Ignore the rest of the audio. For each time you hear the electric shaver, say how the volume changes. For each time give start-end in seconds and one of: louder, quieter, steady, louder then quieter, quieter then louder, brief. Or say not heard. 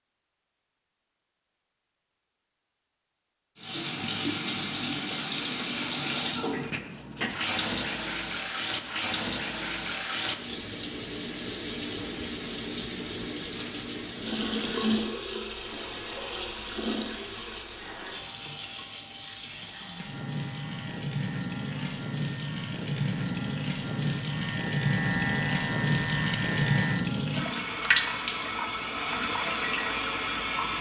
19.6-27.1 louder.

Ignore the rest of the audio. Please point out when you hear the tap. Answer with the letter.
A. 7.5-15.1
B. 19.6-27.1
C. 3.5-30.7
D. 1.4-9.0
C.